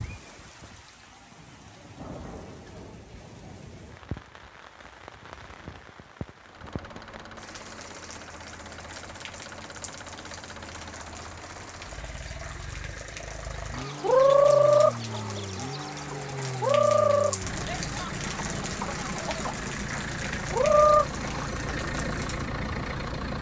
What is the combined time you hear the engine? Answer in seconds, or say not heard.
17 s.